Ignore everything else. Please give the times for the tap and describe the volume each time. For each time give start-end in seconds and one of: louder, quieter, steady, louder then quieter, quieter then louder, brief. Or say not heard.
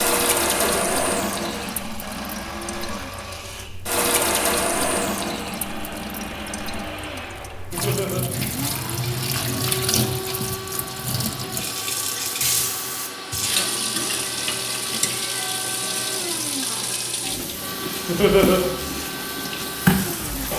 0.0-20.5 steady.